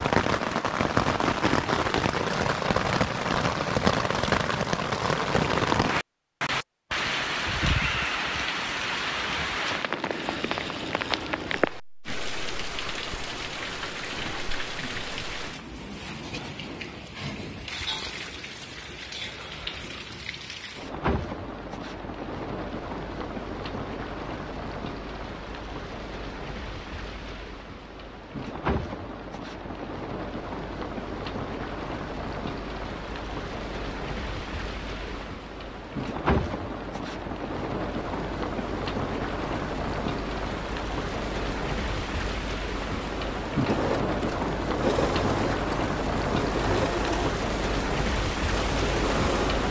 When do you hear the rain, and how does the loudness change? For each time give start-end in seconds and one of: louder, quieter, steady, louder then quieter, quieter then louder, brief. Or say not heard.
0.0-49.6 quieter then louder.